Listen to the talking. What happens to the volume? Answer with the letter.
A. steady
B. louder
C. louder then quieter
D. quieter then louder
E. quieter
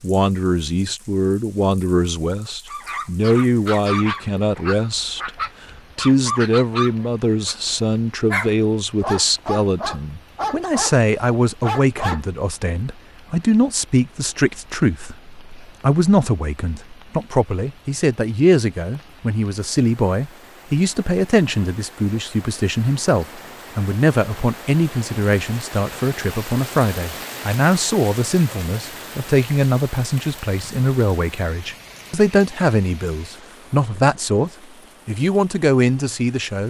A.